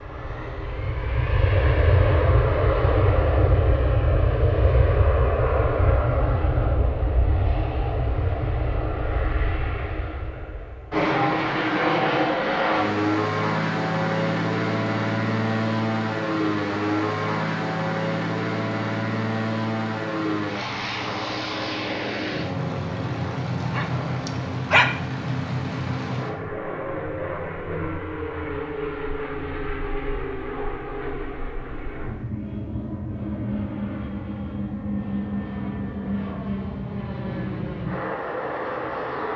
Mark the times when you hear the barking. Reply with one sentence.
You can hear the barking from 23.6 to 24.9 s.